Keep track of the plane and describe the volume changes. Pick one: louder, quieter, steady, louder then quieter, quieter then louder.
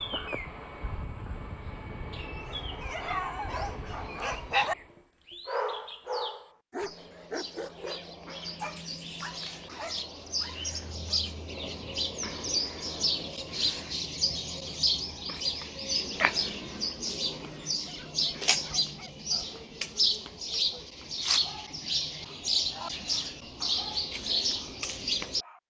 steady.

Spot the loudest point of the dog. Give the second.
5 s.